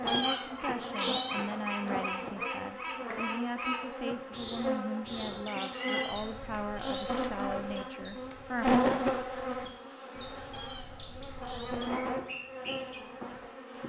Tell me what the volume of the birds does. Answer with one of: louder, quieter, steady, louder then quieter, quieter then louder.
quieter then louder.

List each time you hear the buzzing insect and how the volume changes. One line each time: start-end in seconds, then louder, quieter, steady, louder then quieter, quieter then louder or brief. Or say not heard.
0.0-13.8 louder then quieter.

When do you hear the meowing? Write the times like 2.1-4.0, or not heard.
0.1-2.0, 5.8-7.2, 10.5-11.9.